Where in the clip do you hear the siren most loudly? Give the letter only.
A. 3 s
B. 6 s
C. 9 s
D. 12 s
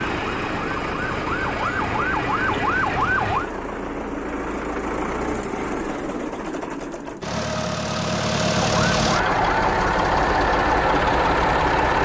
A.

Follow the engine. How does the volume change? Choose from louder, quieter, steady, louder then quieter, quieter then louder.
louder.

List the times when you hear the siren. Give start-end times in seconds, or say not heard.
0.0-3.5, 8.5-12.0.